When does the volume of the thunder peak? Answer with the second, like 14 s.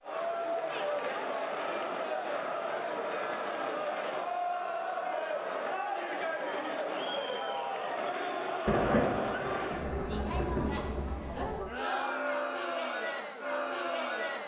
9 s.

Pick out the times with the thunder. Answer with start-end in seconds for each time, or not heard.
8.7-11.1.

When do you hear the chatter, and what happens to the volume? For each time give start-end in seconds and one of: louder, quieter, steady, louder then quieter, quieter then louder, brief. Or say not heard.
0.0-14.4 steady.